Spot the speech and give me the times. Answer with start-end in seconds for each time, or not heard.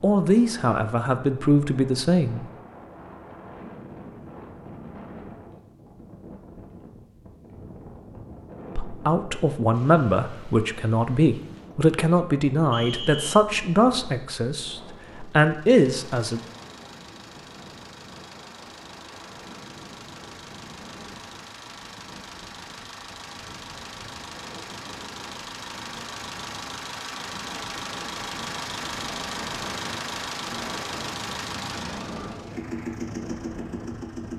0.0-2.5, 8.8-16.4.